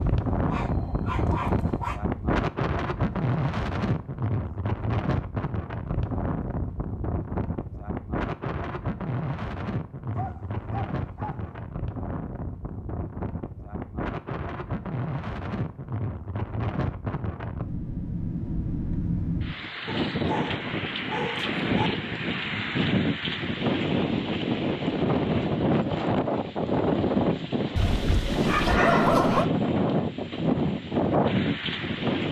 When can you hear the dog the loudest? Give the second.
29 s.